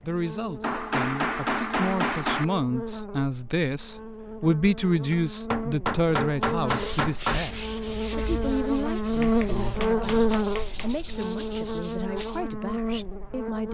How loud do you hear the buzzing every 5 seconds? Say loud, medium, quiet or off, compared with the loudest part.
medium, loud, loud.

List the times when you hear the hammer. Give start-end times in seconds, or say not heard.
0.6-2.5, 5.1-7.4, 9.2-10.9.